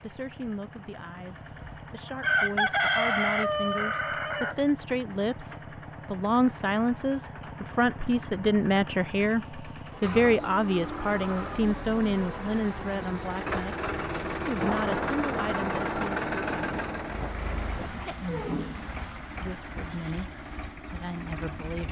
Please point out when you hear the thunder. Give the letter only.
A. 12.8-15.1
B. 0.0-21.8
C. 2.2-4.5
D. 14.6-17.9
D.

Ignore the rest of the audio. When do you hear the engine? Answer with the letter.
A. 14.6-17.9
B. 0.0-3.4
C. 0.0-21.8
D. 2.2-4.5
C.